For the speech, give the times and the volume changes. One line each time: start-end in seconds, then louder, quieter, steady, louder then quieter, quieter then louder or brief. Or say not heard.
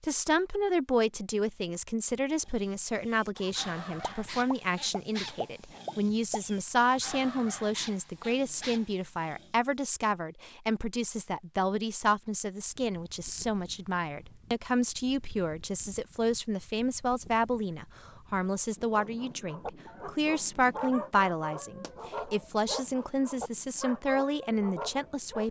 0.0-25.4 steady.